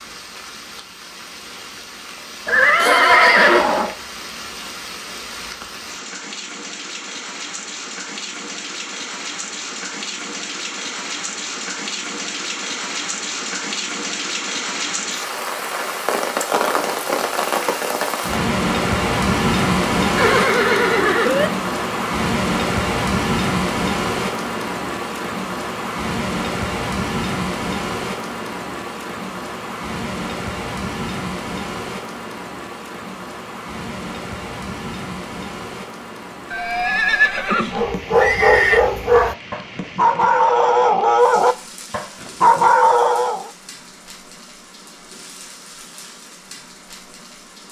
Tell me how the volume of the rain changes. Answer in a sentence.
The volume of the rain goes up, then down.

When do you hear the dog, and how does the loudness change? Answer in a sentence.
The dog can be heard from 37.7 to 43.5 s, at a steady volume.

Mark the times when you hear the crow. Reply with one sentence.
You can't hear the crow here.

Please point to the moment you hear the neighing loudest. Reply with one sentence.
The loudest moment of the neighing is at 3 seconds.